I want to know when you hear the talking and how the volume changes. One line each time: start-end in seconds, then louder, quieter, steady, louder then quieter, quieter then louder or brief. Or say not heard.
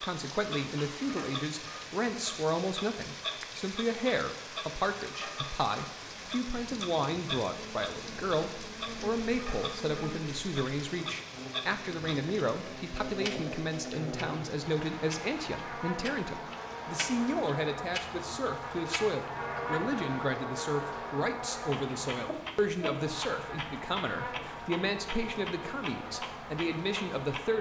0.0-27.5 steady.